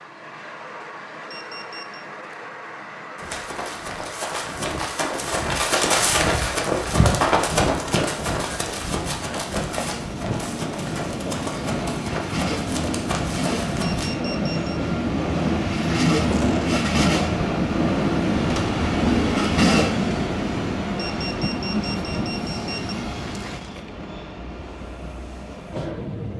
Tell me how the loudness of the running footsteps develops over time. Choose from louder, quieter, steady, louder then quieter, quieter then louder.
louder then quieter.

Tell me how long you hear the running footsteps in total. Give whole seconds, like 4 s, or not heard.
11 s.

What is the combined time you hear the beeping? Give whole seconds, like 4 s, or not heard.
4 s.